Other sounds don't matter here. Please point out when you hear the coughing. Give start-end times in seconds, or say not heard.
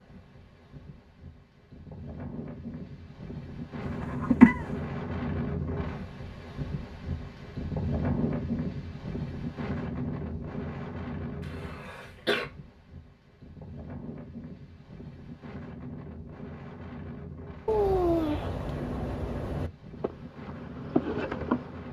3.8-4.7, 11.4-12.4.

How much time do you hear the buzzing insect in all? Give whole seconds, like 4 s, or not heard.
2 s.